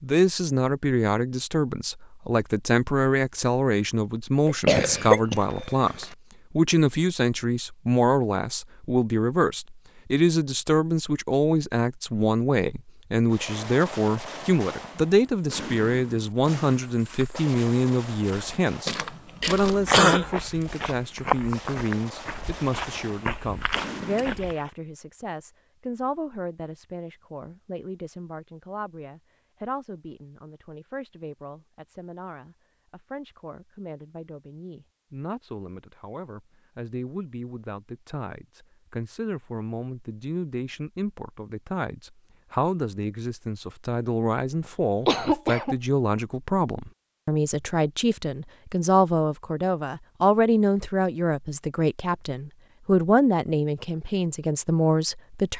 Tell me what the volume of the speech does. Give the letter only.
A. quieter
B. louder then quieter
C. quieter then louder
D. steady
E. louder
C.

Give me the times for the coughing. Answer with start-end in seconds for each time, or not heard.
4.5-6.0, 19.4-20.4, 45.0-45.8.